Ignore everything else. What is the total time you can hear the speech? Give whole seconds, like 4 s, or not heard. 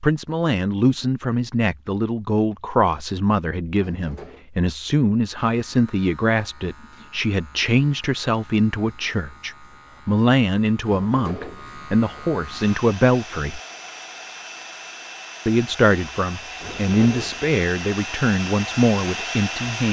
18 s.